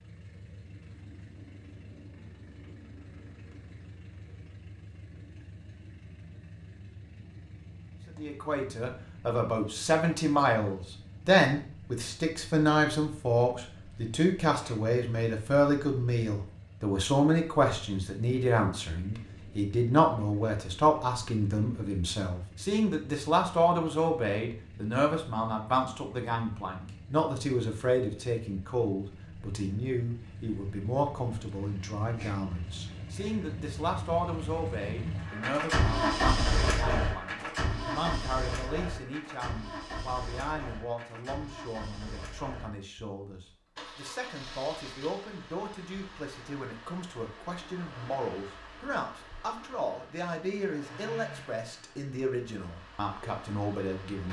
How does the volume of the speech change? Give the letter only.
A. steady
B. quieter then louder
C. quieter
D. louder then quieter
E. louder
C.